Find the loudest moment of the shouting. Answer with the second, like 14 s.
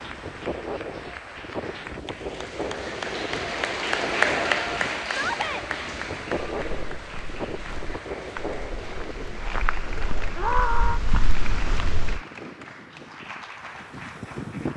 11 s.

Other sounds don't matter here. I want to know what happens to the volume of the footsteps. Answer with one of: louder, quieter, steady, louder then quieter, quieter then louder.
louder.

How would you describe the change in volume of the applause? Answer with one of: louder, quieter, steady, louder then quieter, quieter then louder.
louder then quieter.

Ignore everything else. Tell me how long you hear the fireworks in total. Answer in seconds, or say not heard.
not heard.